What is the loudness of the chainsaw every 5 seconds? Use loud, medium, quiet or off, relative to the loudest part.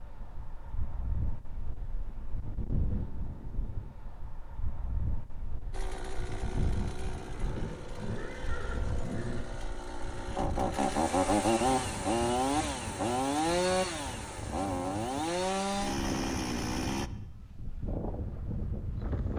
off, quiet, loud, loud.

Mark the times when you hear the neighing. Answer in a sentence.
The neighing can be heard from 7.4 to 9.4 s.